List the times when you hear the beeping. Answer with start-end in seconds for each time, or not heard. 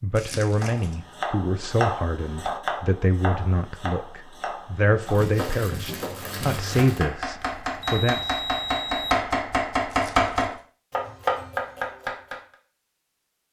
7.4-9.2.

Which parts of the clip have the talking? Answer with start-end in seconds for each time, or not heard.
0.0-8.2.